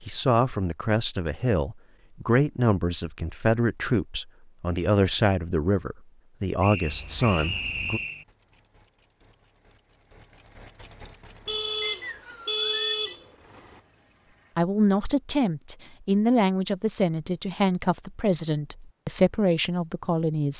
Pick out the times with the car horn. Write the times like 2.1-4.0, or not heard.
6.8-8.1, 11.4-13.8.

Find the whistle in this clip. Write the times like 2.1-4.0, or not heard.
6.6-8.2, 11.8-13.2.